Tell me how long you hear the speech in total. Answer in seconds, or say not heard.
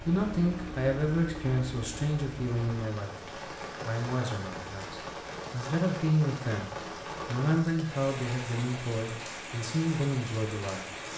11 s.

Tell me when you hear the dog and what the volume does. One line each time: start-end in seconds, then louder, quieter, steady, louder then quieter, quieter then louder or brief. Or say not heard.
not heard.